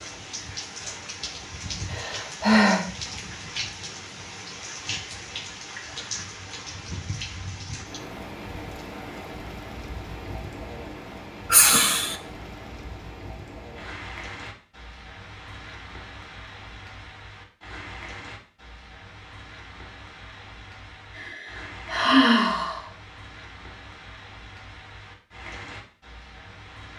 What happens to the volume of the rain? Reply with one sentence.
The loudness of the rain goes down.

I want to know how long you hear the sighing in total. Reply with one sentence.
You can hear the sighing for 3 seconds altogether.